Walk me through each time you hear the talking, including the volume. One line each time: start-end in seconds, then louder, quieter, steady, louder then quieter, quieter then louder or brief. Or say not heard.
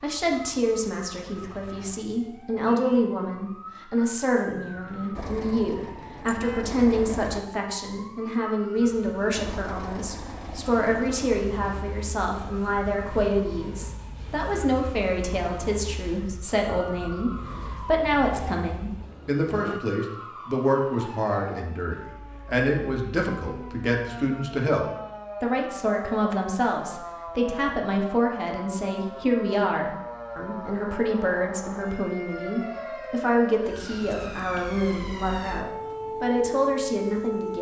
0.0-37.5 steady.